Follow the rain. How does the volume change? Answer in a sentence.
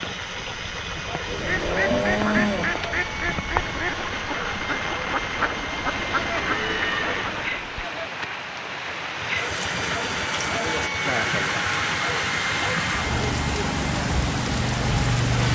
The volume of the rain goes up.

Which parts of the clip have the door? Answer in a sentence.
The door can't be heard in this clip.